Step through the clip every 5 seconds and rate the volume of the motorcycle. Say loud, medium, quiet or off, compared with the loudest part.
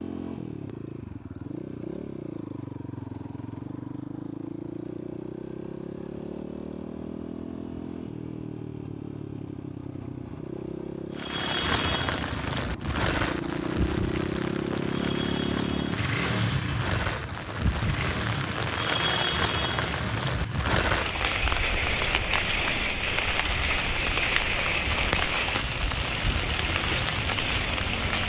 medium, medium, loud, loud, medium, medium.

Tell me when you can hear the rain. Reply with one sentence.
You can hear the rain from 11.2 to 28.2 s.